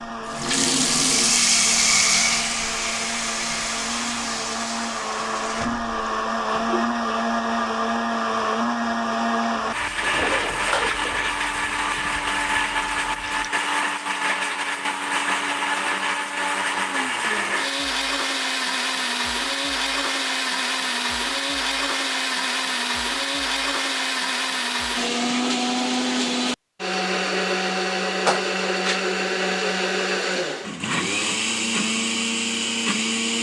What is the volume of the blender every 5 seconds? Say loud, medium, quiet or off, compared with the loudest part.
medium, loud, loud, loud, loud, loud, loud.